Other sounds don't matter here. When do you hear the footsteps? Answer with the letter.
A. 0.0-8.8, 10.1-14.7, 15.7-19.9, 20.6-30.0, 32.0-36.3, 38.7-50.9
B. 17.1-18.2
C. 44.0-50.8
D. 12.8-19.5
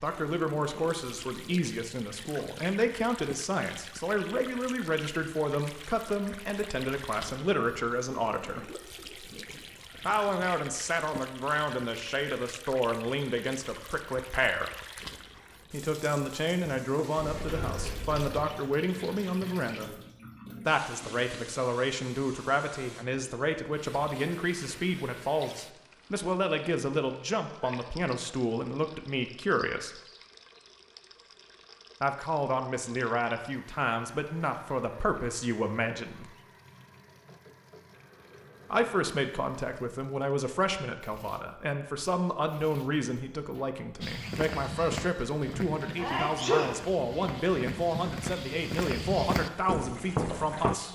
C.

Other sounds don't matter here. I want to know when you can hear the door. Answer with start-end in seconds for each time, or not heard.
17.1-18.2.